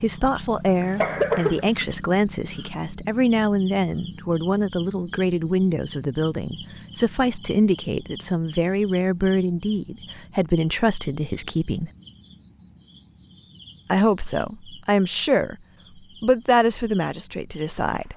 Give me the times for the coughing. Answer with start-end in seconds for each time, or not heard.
0.6-1.9.